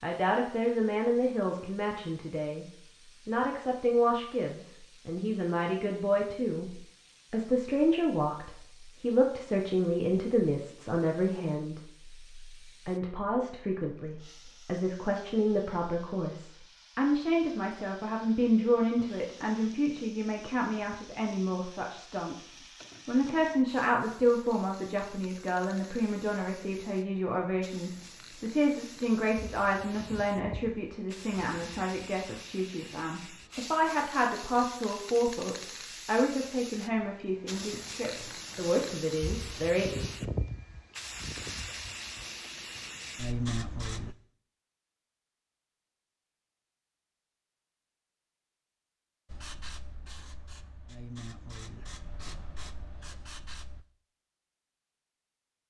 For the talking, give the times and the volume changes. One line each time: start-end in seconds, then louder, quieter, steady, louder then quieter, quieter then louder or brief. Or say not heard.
0.0-2.6 brief
3.2-40.0 steady.